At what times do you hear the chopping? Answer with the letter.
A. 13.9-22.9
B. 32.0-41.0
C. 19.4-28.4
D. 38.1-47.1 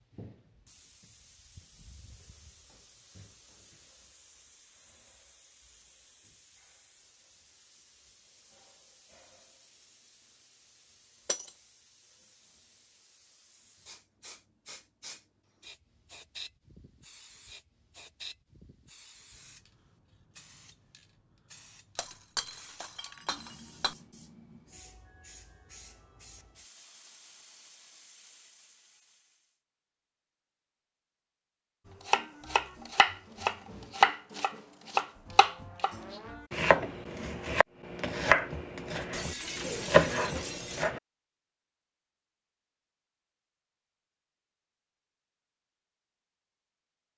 B.